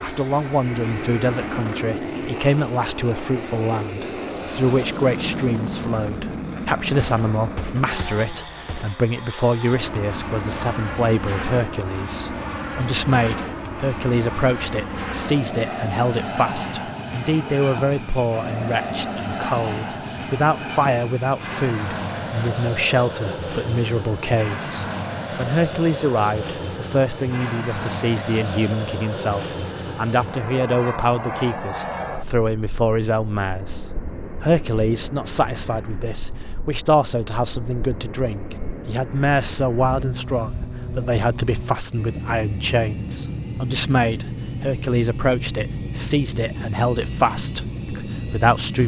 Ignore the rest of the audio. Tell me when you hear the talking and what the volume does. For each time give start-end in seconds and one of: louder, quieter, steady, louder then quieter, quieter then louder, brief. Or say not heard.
0.0-48.8 steady.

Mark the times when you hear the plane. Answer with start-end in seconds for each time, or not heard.
0.0-48.8.